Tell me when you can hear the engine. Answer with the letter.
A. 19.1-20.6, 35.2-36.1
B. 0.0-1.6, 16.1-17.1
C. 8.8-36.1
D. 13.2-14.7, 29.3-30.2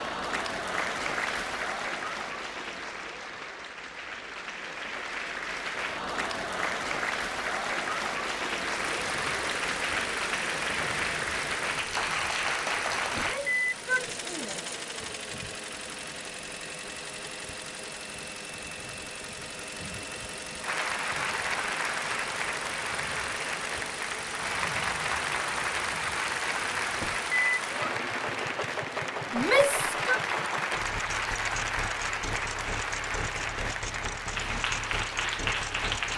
C.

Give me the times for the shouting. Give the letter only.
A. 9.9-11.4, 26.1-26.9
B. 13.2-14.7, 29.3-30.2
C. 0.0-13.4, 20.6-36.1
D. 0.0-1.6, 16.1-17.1
B.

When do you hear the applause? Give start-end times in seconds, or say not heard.
0.0-13.4, 20.6-36.1.